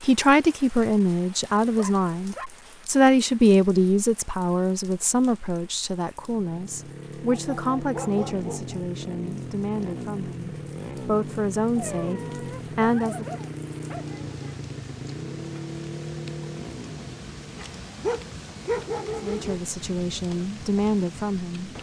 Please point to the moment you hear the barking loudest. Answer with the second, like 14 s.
19 s.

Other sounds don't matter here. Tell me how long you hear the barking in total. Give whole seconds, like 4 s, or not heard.
7 s.